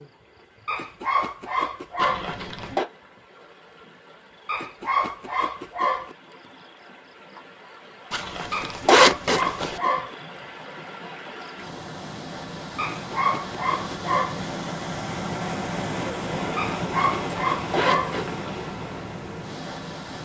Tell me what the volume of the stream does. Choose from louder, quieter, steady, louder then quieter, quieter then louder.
louder.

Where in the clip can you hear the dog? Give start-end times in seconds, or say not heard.
0.7-2.3, 4.5-6.2, 8.5-10.2, 12.8-14.4, 16.6-18.2.